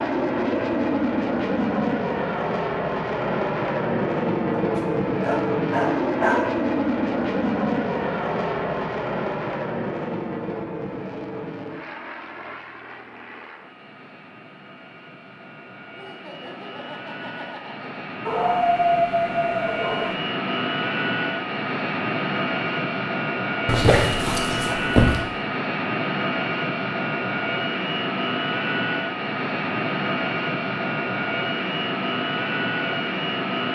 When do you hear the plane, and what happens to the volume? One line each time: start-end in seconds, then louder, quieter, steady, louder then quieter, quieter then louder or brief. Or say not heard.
0.0-33.6 quieter then louder.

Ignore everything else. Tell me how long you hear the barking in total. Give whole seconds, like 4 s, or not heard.
5 s.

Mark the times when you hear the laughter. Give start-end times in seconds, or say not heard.
15.9-17.9.